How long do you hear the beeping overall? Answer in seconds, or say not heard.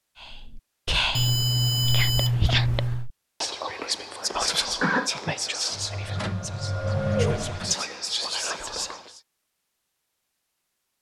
2 s.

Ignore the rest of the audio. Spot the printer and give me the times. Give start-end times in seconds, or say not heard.
5.7-7.8.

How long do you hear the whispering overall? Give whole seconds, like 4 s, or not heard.
9 s.